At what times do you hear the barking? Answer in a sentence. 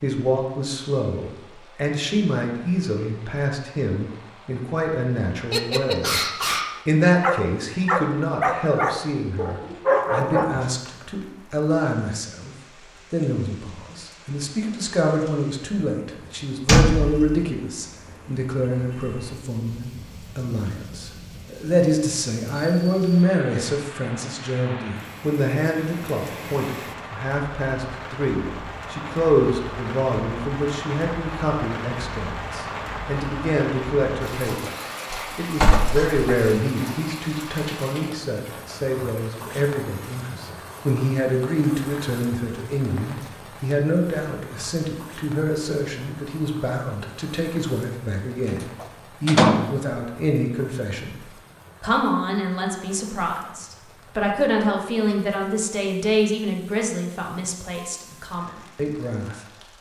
The barking can be heard from 5.5 to 10.7 s.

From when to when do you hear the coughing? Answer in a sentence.
The coughing can't be heard in this clip.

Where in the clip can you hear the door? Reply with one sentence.
The door can be heard from 16.6 to 17.4 s, from 35.1 to 36.2 s and from 48.8 to 49.6 s.